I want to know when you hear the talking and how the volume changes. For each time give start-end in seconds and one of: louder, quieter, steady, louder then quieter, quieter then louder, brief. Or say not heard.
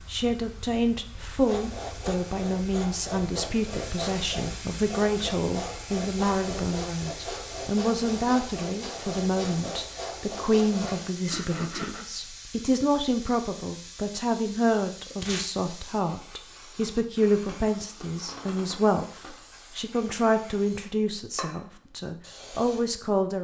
0.1-23.3 steady.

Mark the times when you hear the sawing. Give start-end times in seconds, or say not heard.
1.4-12.1.